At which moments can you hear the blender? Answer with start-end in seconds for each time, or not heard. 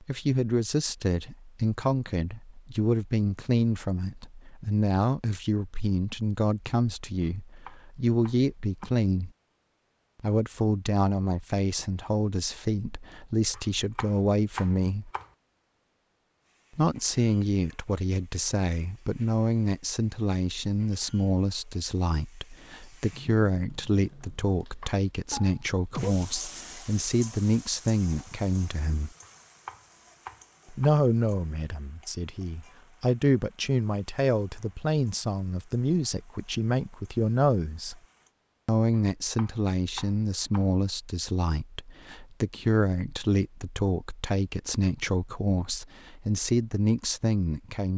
not heard.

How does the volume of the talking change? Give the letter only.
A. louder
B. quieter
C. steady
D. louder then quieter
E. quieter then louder
C.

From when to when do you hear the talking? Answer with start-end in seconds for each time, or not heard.
0.0-9.3, 10.2-15.1, 16.8-29.1, 30.7-38.0, 38.6-47.9.